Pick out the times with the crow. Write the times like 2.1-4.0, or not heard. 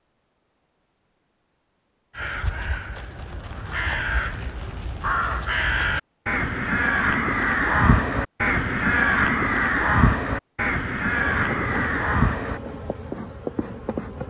2.1-12.6.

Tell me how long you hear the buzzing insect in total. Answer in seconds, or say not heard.
3 s.